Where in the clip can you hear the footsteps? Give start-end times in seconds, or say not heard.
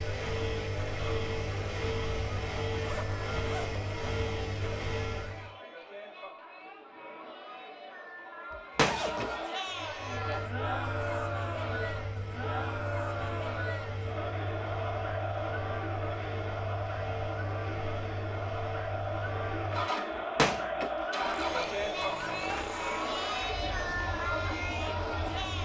not heard.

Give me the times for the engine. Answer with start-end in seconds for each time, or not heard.
0.0-5.5, 9.7-25.5.